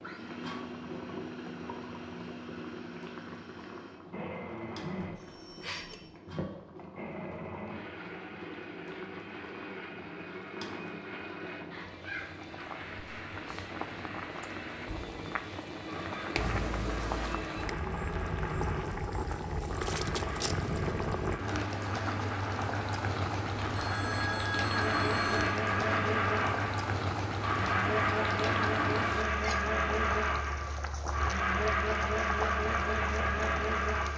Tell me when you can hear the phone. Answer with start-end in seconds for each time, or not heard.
5.0-6.1, 16.4-17.4, 23.6-25.6.